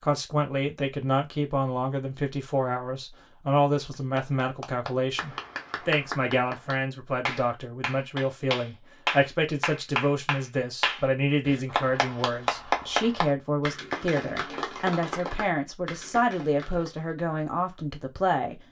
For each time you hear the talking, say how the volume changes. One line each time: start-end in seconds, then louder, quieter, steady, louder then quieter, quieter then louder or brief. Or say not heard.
0.0-18.6 steady.